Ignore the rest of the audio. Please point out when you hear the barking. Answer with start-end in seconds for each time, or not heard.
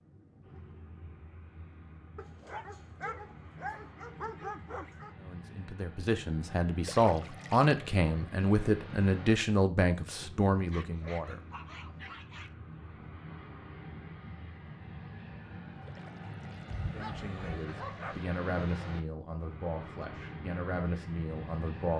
2.1-5.2, 10.7-12.6, 16.6-18.2.